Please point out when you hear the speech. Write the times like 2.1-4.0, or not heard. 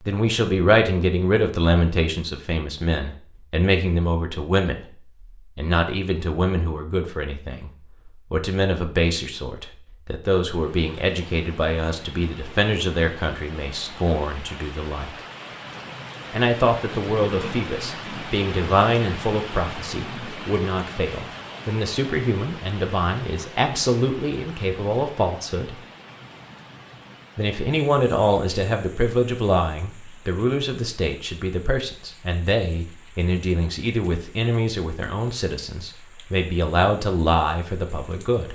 0.1-4.8, 5.5-7.7, 8.3-15.1, 16.3-25.8, 27.4-38.5.